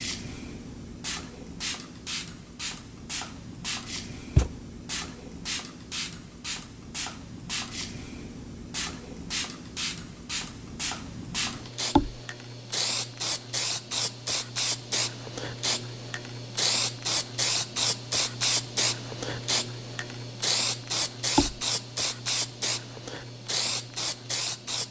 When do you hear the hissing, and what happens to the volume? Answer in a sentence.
You can hear the hissing from 0.0 to 24.8 s, getting louder.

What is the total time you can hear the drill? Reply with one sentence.
The drill can't be heard in this clip.